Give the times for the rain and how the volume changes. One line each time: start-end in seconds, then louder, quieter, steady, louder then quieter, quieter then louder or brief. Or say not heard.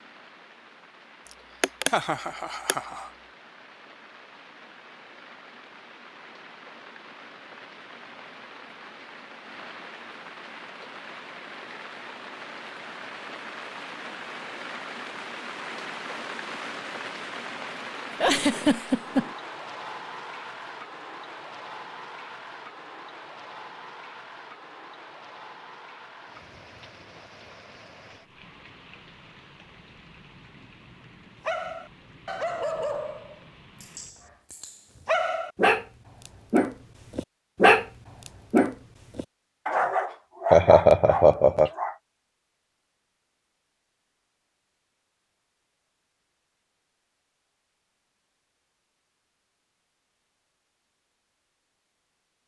0.0-34.5 louder then quieter.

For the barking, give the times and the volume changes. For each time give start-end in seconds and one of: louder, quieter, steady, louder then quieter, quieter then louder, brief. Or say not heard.
31.4-42.0 louder then quieter.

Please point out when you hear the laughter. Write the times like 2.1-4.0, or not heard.
1.6-3.0, 18.1-19.4, 40.5-41.7.